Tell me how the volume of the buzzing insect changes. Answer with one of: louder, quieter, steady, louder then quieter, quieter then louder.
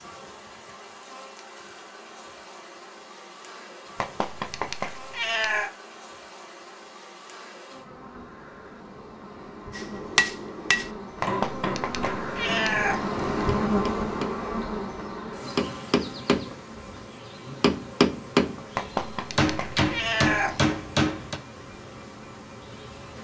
louder then quieter.